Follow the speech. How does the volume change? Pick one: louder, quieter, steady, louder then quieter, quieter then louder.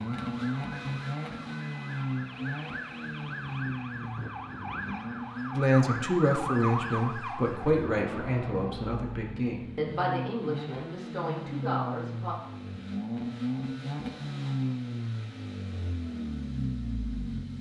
quieter.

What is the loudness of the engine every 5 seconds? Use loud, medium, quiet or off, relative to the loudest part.
loud, medium, loud, loud.